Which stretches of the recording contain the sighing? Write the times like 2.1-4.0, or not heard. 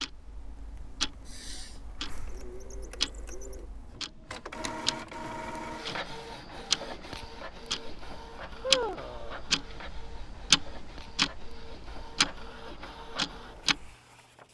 1.2-1.8, 8.6-9.4.